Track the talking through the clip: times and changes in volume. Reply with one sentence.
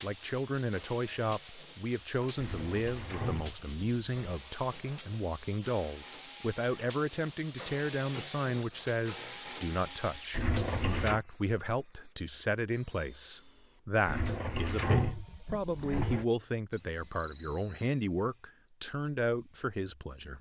You can hear the talking from 0.0 to 20.3 s, at a steady volume.